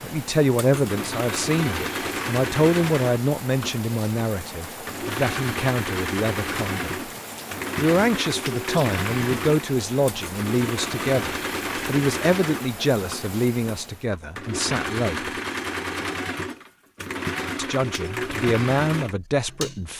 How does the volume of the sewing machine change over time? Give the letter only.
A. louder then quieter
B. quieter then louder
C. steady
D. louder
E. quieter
C.